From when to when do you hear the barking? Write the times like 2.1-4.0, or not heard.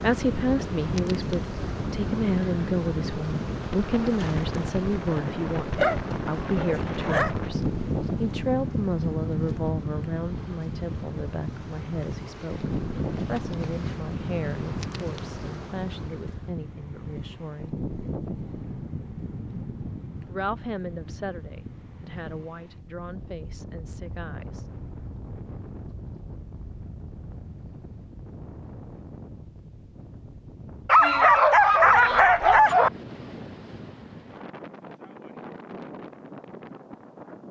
5.1-7.3, 30.9-32.9.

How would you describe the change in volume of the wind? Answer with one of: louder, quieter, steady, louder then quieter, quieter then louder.
quieter.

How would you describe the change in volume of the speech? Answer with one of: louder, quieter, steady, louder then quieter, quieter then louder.
quieter.